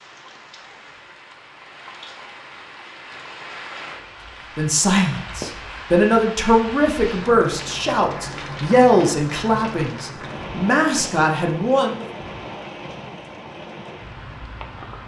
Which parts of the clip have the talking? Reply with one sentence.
You can hear the talking from 4.5 to 12.1 s.